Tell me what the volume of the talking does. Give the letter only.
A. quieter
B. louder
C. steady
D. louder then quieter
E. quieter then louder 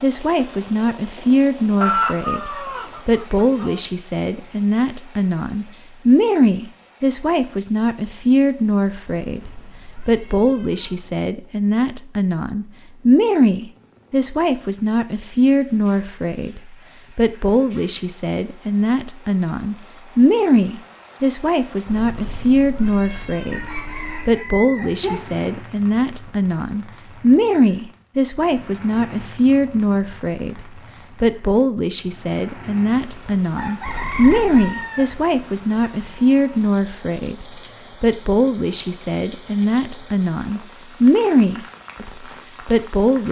C.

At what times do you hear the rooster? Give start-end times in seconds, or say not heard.
1.8-3.8, 23.5-25.2, 33.5-35.1.